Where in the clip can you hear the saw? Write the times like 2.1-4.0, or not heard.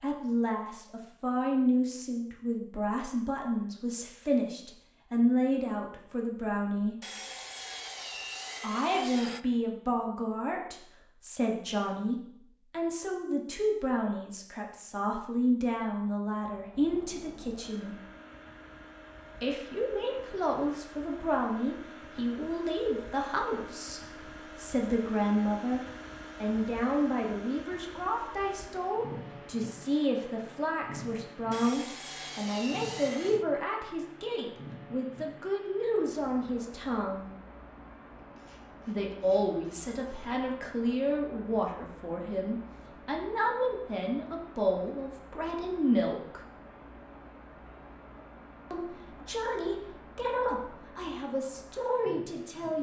7.0-9.4, 31.5-33.5.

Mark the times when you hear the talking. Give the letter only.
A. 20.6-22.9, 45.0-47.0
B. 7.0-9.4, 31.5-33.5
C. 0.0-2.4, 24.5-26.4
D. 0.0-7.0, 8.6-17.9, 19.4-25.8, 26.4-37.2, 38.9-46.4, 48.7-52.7
D.